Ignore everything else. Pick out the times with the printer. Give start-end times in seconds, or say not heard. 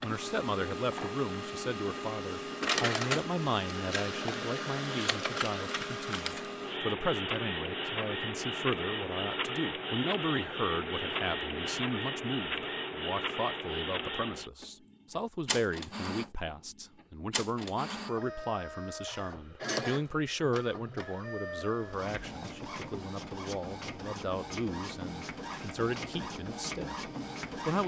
0.0-27.8.